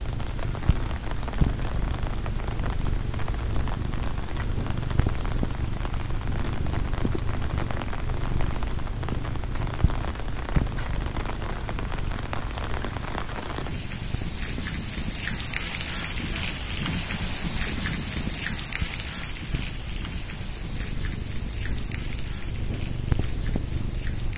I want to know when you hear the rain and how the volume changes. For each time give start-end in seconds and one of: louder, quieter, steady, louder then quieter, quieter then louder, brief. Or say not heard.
0.0-24.3 louder then quieter.